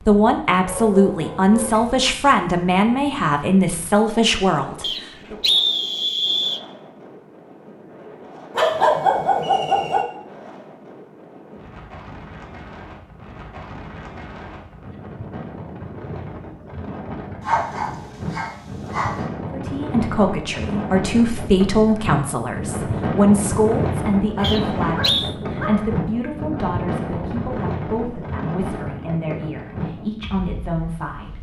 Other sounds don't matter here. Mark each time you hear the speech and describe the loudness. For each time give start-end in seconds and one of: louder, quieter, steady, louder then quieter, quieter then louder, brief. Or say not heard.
0.1-5.3 steady
19.5-31.3 quieter.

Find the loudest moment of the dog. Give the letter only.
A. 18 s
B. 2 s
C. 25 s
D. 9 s
D.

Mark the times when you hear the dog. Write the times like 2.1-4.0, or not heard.
0.6-2.1, 8.6-10.1, 17.4-19.2, 24.2-25.9.